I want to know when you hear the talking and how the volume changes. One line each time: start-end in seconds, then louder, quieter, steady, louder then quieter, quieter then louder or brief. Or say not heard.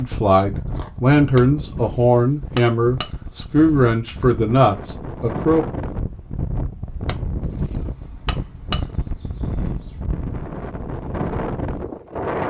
0.0-5.7 steady.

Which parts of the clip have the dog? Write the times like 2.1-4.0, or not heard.
not heard.